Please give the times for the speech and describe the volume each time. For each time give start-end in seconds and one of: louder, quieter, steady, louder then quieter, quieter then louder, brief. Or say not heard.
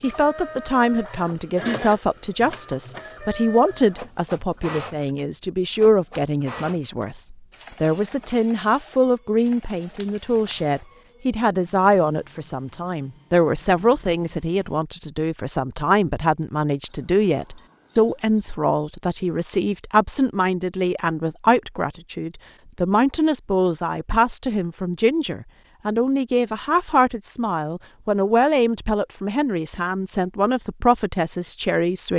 0.0-32.1 steady.